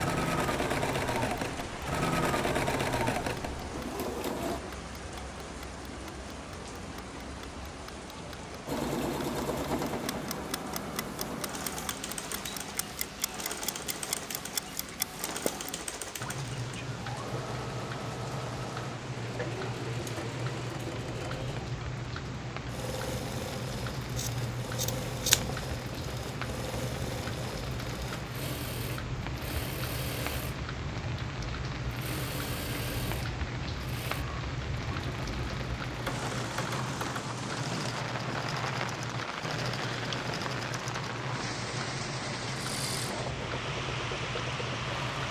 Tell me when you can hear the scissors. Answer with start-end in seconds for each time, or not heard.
24.1-25.6.